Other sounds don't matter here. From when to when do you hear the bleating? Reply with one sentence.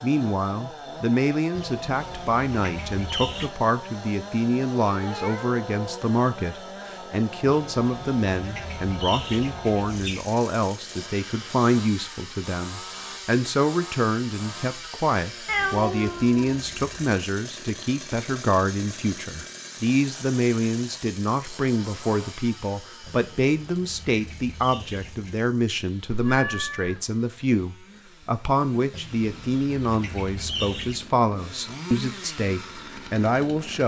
You can't hear the bleating here.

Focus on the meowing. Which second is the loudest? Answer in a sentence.
The loudest moment of the meowing is at 16 seconds.